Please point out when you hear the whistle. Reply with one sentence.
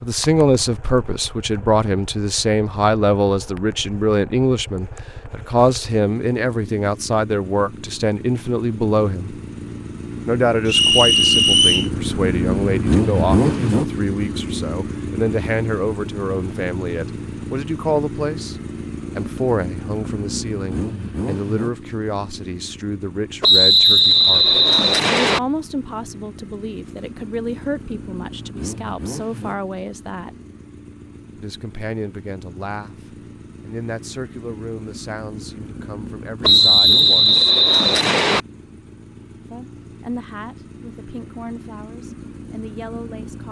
You can hear the whistle from 10.7 to 11.9 s, from 23.4 to 25.4 s and from 36.4 to 38.4 s.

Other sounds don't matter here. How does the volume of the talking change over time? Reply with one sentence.
The volume of the talking goes down.